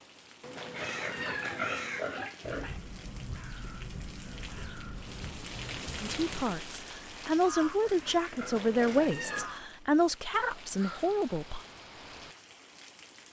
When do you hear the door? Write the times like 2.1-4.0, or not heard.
not heard.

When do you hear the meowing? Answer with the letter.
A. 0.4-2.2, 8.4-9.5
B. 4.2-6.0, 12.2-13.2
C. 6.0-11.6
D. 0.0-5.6
A.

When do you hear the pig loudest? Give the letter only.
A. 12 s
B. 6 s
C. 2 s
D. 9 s
C.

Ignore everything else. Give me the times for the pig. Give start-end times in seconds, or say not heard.
0.8-2.8, 7.6-9.6.